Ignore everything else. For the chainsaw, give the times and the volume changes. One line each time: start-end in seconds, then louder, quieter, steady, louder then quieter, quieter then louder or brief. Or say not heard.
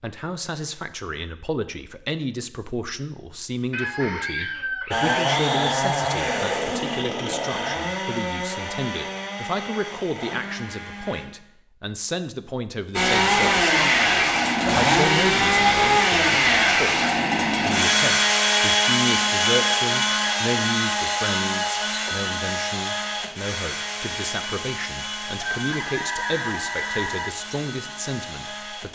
4.9-11.2 quieter
12.9-28.9 quieter.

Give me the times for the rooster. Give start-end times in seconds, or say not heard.
3.7-5.5, 25.4-27.3.